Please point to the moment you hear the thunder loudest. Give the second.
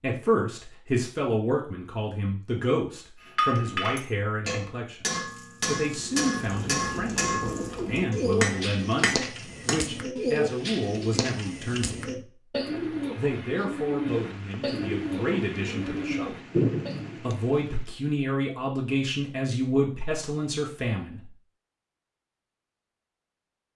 17 s.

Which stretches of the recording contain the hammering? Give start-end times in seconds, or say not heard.
3.2-9.8.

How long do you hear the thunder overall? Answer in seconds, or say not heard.
4 s.